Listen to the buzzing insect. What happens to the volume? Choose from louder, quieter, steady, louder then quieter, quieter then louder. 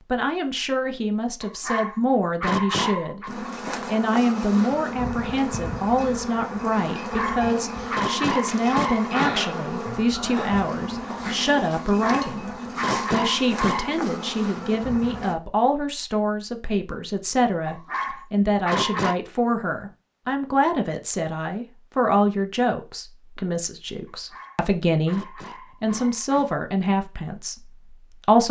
steady.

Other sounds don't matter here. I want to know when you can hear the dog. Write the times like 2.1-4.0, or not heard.
1.4-3.3, 7.0-9.3, 11.8-13.9, 17.6-19.1, 24.1-26.6.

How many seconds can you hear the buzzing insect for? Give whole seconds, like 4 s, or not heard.
12 s.